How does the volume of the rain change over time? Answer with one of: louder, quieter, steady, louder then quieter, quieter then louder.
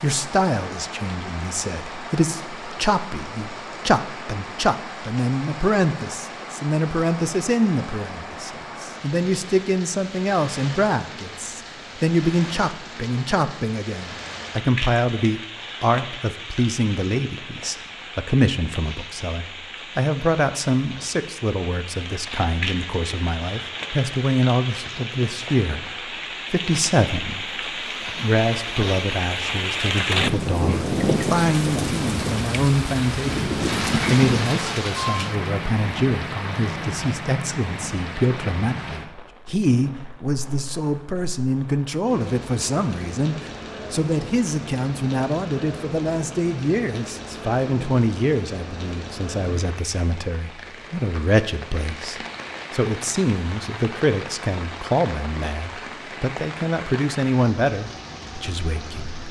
louder then quieter.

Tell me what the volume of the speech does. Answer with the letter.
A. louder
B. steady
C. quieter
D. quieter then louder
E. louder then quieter
B.